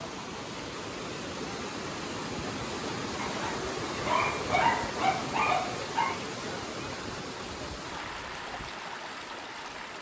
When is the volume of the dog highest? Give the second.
5 s.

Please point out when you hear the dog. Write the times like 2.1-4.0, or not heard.
3.2-6.2.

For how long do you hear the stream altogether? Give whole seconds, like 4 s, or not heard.
10 s.